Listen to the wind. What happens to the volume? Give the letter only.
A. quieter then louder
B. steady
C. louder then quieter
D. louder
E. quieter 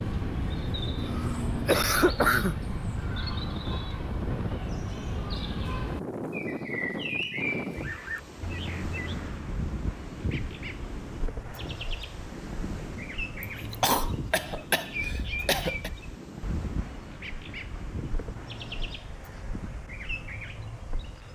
E.